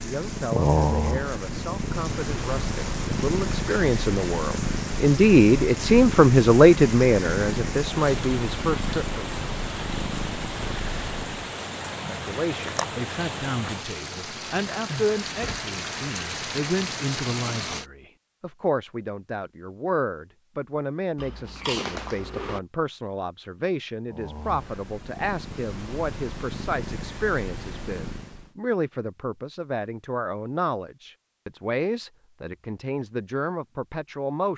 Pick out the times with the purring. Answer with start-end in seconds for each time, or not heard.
0.0-11.5, 24.1-28.5.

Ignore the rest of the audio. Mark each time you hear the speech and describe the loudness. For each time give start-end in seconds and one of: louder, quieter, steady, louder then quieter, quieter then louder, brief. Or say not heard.
0.0-9.4 louder then quieter
12.1-34.5 steady.